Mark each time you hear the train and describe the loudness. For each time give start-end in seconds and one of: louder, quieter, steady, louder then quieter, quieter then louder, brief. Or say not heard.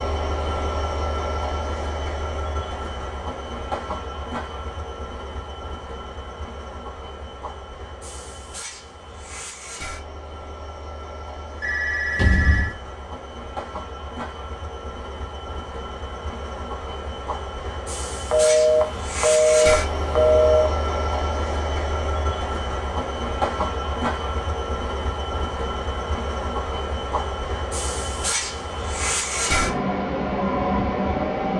0.0-31.5 quieter then louder.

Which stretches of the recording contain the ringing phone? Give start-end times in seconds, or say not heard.
11.6-12.8, 18.3-20.7.